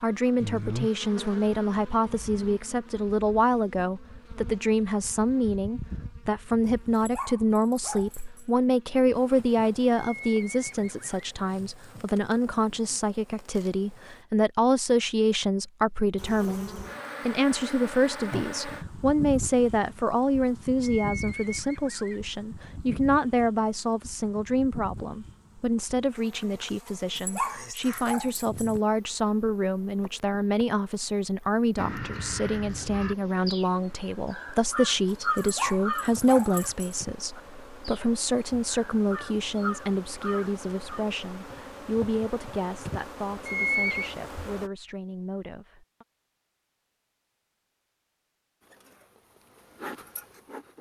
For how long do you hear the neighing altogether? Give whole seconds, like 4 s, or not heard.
3 s.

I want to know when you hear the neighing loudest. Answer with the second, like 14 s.
44 s.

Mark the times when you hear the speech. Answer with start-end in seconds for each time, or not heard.
0.0-46.0.